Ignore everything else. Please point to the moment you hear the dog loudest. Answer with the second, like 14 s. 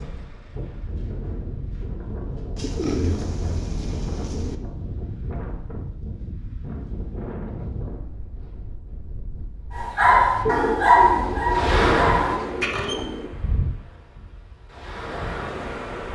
11 s.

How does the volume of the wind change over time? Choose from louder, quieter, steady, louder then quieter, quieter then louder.
louder then quieter.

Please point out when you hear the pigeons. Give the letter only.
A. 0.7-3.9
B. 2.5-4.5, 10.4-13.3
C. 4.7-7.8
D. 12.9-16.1
B.